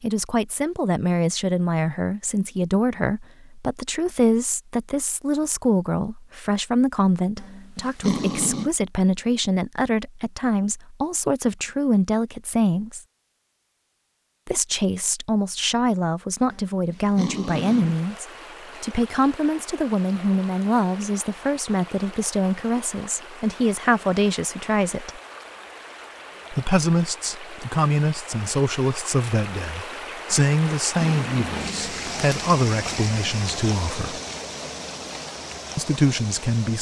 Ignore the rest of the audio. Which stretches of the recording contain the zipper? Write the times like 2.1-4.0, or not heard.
not heard.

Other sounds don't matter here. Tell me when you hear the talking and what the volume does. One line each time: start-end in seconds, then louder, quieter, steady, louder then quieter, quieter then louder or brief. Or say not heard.
0.0-13.0 steady
14.4-25.2 steady
26.5-34.2 steady
35.8-36.7 brief.